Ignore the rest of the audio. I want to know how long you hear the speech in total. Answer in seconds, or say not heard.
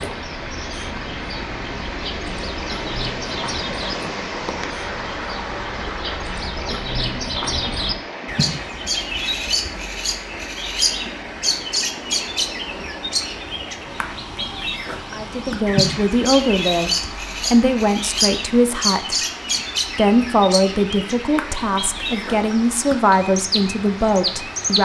9 s.